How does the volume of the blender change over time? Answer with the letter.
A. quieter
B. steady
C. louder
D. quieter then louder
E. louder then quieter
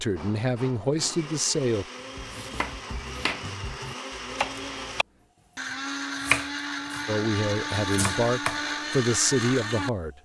C.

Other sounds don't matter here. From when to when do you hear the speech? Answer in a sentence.
The speech can be heard from 0.0 to 1.9 s and from 7.0 to 10.1 s.